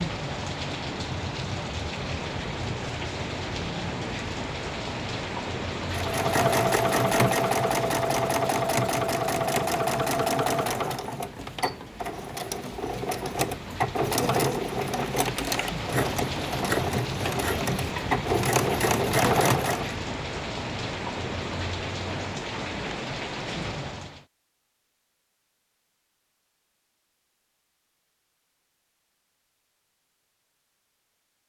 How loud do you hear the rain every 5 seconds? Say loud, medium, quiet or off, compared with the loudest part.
loud, loud, medium, loud, loud, off, off.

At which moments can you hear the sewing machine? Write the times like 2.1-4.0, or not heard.
5.8-19.9.